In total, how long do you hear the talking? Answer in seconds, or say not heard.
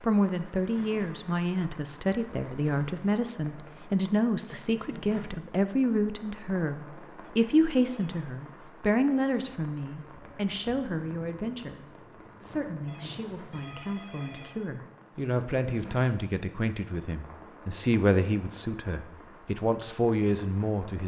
21 s.